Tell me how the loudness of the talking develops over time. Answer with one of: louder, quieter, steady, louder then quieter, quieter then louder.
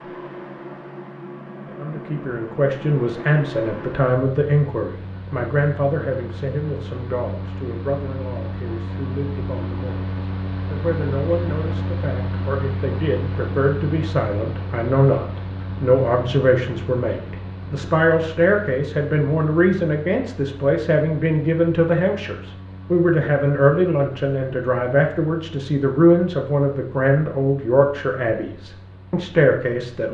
quieter then louder.